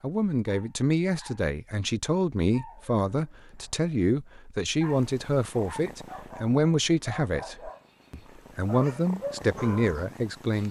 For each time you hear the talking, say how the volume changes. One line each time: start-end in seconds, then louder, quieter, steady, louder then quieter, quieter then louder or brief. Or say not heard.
0.0-10.6 steady.